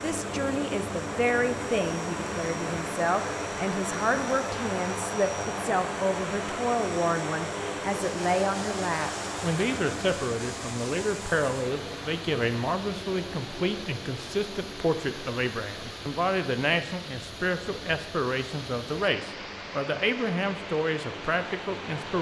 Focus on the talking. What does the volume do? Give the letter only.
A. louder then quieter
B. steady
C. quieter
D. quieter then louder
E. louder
B.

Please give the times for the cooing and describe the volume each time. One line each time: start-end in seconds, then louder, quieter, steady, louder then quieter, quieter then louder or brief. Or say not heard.
not heard.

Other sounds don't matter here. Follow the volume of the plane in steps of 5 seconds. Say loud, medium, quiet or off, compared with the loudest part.
loud, loud, medium, quiet, medium.